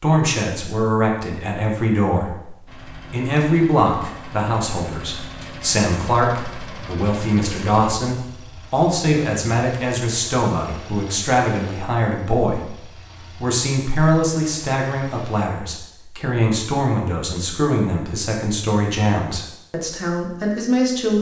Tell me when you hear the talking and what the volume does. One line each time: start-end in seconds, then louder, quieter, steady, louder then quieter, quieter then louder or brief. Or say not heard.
0.0-21.1 steady.